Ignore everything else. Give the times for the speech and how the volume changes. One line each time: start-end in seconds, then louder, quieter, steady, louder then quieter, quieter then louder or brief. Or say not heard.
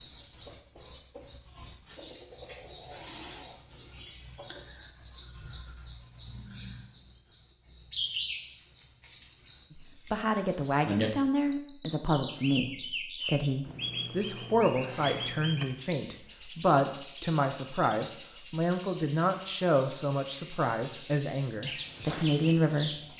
9.8-23.0 steady.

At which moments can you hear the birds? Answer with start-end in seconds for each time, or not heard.
0.0-23.1.